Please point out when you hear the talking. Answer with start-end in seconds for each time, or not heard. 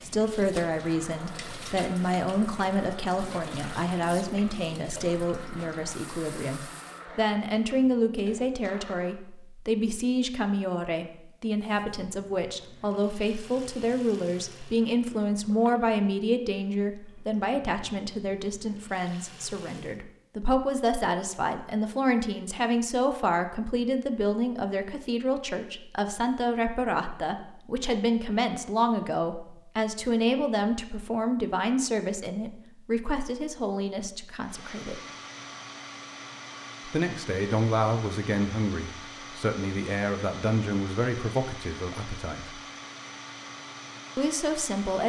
0.0-35.0, 36.9-42.6, 44.1-45.0.